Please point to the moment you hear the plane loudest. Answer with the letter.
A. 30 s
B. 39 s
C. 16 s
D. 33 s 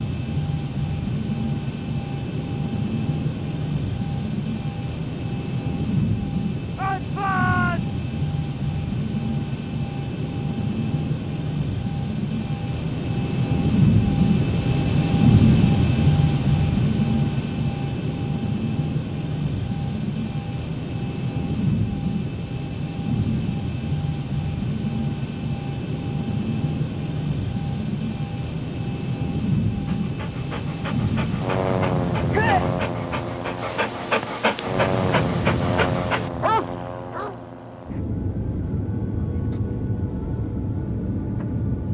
C.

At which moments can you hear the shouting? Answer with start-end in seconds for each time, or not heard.
6.8-7.9, 32.3-32.7.